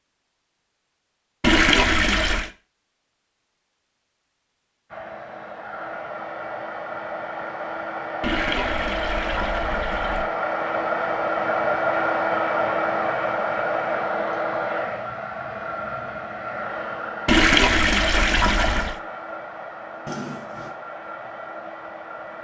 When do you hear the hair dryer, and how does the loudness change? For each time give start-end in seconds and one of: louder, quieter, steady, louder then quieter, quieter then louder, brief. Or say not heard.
4.9-22.3 louder then quieter.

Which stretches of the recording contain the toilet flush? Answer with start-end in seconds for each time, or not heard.
1.4-2.5, 8.2-10.2, 17.2-18.9.